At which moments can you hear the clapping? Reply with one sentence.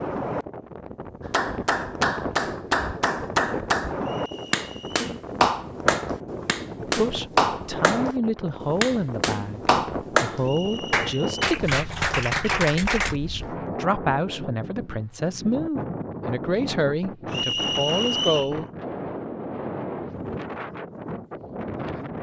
The clapping can be heard from 1.2 to 13.2 s.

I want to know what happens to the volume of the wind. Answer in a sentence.
The loudness of the wind stays about the same.